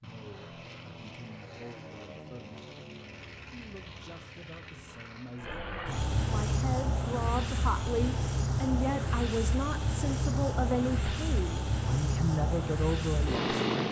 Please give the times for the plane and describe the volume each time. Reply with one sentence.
The plane can be heard from 0.0 to 13.8 s, getting louder.